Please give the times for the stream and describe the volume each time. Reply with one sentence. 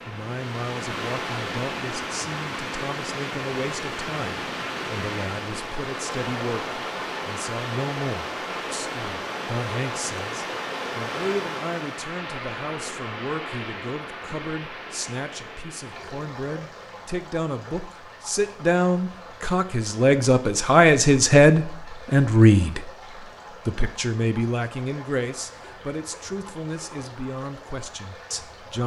You can hear the stream from 0.0 to 28.8 s, getting quieter.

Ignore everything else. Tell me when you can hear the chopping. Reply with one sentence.
The chopping can't be heard in this clip.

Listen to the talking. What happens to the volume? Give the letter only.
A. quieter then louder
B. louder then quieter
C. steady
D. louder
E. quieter
B.